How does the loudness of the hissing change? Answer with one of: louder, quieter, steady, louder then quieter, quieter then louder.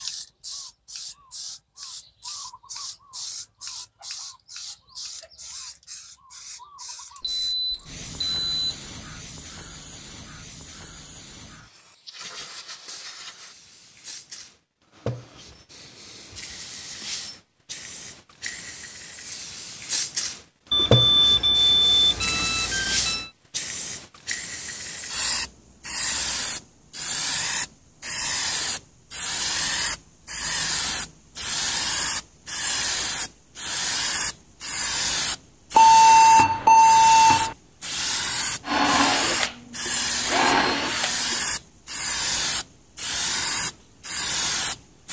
louder.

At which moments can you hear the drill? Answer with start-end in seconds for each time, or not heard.
38.6-41.5.